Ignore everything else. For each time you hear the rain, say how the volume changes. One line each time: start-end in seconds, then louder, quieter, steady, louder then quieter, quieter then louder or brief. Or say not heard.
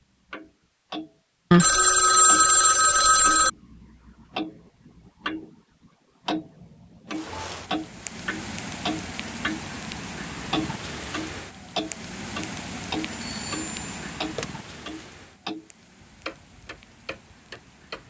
7.1-18.0 quieter.